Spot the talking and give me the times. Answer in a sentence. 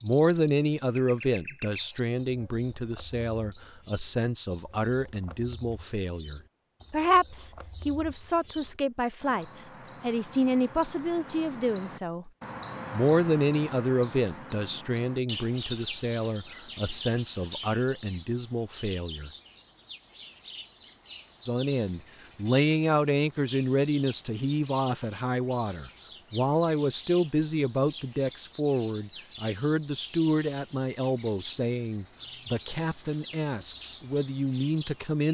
You can hear the talking from 0.0 to 12.3 s, from 12.9 to 19.3 s and from 21.4 to 35.2 s.